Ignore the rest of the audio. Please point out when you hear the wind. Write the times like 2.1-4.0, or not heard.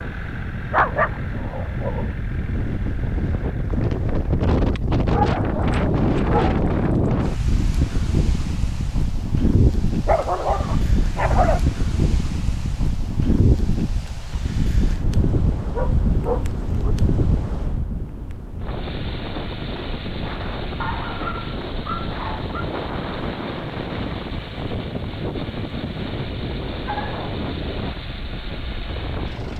0.0-29.5.